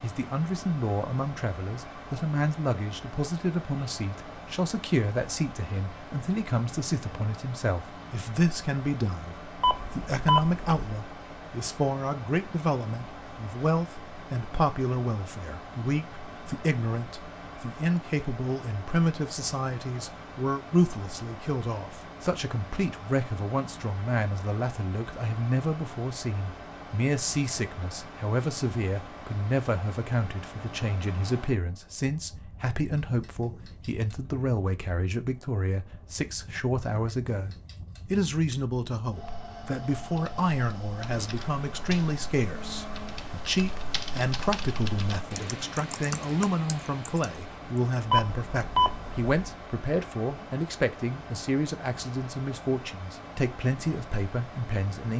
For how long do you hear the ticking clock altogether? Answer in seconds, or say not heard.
not heard.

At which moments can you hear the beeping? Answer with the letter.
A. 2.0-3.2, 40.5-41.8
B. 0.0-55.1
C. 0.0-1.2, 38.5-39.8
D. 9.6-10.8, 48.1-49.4
D.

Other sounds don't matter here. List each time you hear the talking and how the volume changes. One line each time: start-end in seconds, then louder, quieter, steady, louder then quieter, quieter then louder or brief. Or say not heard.
0.0-55.1 steady.